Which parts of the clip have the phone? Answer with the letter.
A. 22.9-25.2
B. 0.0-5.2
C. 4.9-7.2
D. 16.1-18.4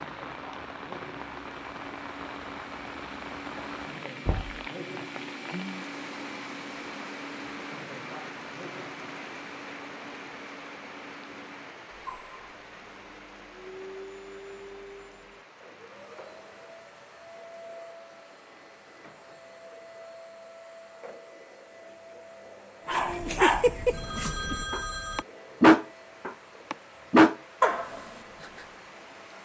A.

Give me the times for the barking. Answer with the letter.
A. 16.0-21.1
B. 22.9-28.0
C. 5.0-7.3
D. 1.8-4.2
B.